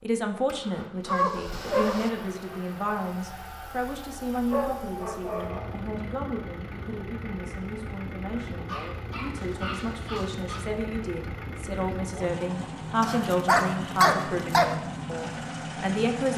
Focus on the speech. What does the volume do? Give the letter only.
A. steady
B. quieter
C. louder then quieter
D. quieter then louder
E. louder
D.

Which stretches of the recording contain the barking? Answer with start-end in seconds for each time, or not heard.
1.1-2.1, 4.5-5.8, 8.7-10.7, 13.0-14.8.